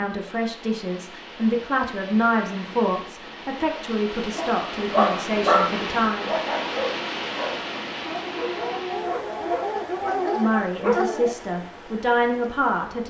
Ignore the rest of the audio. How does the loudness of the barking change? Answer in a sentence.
The volume of the barking goes down, then up.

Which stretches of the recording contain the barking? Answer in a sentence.
The barking can be heard from 4.3 to 11.3 s.